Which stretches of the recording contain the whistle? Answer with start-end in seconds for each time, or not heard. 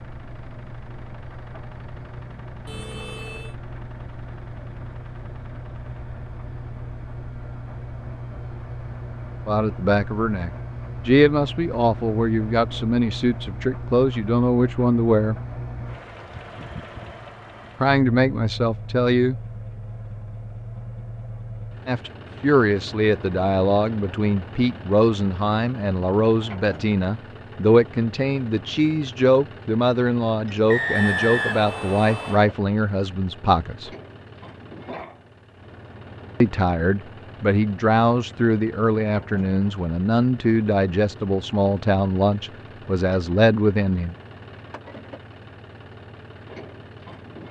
30.6-32.5.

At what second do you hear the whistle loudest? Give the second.
31 s.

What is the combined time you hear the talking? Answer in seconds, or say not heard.
27 s.